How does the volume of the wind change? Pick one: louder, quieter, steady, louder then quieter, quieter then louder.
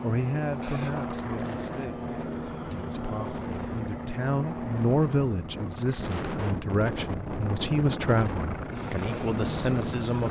louder.